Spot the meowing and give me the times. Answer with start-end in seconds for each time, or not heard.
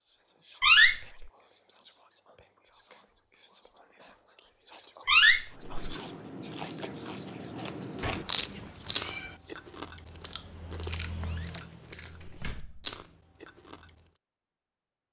8.0-9.4.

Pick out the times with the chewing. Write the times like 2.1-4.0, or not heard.
5.5-14.1.